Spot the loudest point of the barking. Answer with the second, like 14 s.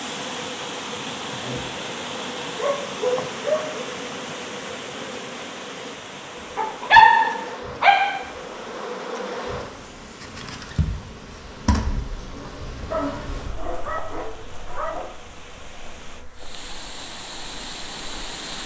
7 s.